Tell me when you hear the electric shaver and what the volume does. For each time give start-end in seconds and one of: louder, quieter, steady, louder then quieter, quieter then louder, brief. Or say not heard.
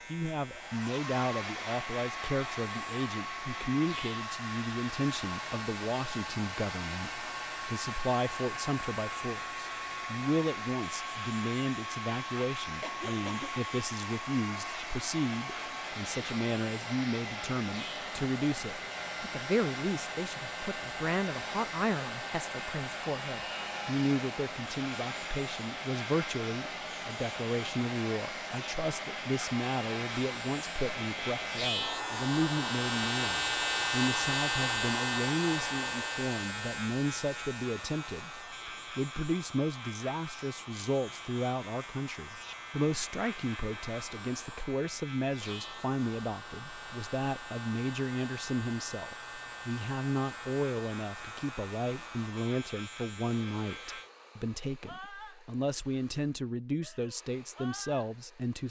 0.0-54.1 louder then quieter.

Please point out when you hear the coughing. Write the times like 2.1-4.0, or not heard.
12.8-13.6.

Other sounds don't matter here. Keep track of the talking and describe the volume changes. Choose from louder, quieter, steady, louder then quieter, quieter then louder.
steady.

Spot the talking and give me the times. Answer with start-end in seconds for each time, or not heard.
0.1-58.6.